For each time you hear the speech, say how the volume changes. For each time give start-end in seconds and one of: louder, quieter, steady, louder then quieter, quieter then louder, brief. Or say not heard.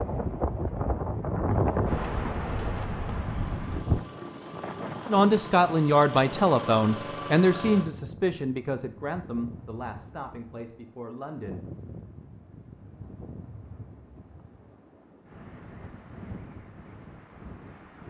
5.0-11.6 quieter.